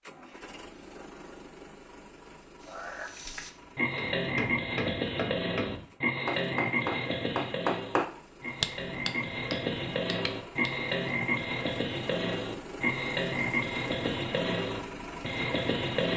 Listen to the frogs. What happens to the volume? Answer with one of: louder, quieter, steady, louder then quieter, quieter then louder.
steady.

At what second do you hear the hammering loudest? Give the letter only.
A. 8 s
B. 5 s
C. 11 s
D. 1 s
A.